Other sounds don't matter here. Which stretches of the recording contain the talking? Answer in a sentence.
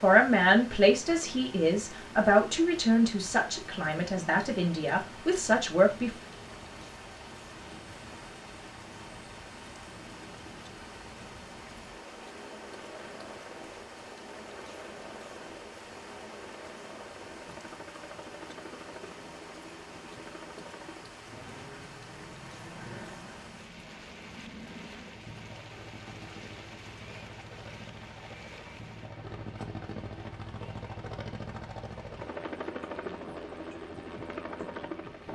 You can hear the talking from 0.0 to 6.1 s.